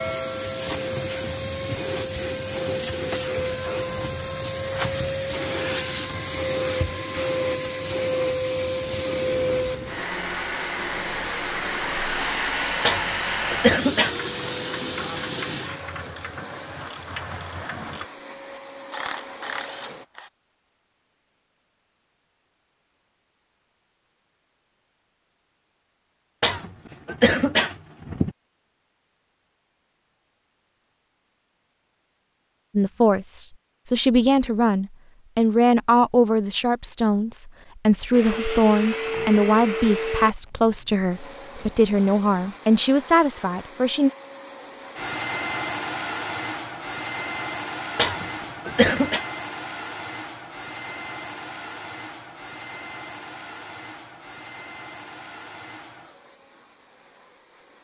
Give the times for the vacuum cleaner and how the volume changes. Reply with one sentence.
The vacuum cleaner can be heard from 0.0 to 20.1 s, getting quieter; and from 38.1 to 57.7 s, getting quieter.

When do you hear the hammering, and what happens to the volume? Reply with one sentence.
You can't hear the hammering here.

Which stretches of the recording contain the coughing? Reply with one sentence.
The coughing can be heard from 12.8 to 14.2 s, from 26.4 to 28.3 s and from 48.0 to 49.2 s.